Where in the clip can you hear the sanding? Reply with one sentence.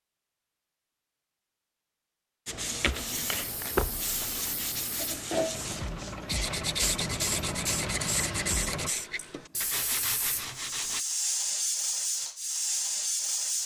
You can hear the sanding from 2.5 to 11.1 s.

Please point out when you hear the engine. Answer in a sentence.
You can hear the engine from 5.5 to 8.9 s.